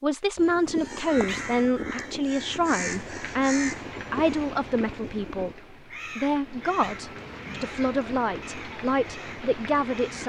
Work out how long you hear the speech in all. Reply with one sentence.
The speech can be heard for 10 seconds in total.